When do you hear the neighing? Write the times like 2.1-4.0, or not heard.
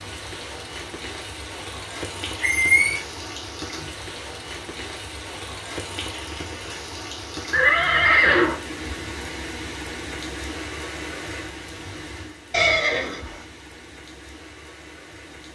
2.4-3.0, 7.5-8.6, 12.5-13.4.